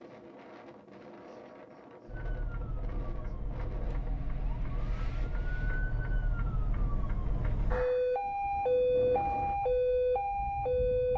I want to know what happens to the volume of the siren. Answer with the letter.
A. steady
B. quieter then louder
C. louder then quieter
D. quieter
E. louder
E.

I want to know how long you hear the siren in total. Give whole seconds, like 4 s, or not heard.
9 s.